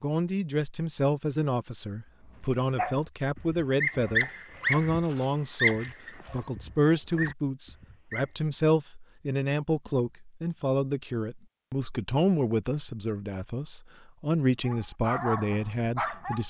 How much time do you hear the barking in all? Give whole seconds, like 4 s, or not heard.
8 s.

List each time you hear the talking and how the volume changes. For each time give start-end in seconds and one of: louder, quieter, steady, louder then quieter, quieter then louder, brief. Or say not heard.
0.0-16.4 steady.